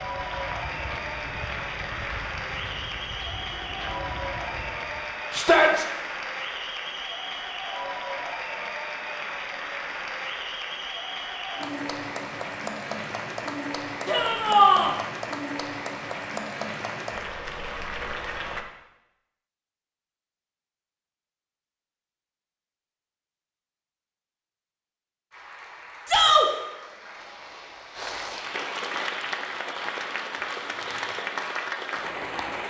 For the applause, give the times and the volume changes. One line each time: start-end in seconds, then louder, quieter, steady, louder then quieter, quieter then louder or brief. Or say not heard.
0.0-18.6 steady
25.3-32.6 louder.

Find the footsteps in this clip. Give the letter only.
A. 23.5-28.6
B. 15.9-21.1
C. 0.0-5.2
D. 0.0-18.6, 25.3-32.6
C.